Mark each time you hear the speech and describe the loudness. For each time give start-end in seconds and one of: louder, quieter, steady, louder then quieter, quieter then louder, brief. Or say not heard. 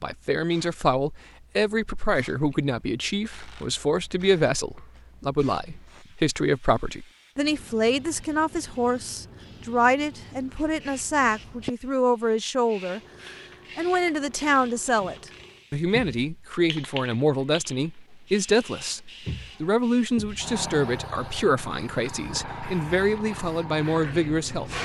0.0-24.7 steady.